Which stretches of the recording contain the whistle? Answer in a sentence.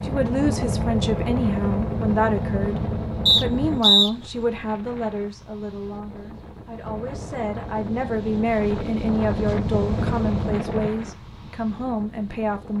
You can hear the whistle from 3.2 to 4.1 s.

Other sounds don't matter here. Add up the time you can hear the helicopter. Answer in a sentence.
The helicopter can be heard for 8 seconds in total.